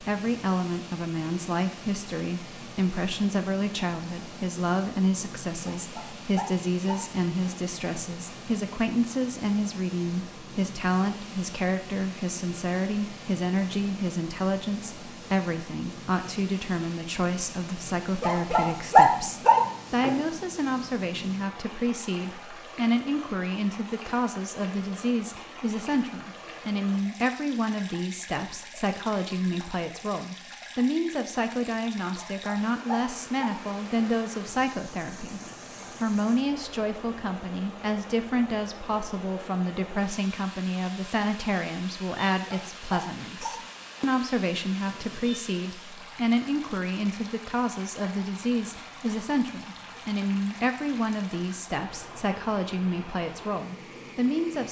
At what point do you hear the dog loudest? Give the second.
19 s.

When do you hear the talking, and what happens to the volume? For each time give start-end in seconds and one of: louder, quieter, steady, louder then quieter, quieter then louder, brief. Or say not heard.
0.0-35.4 steady
36.0-54.6 steady.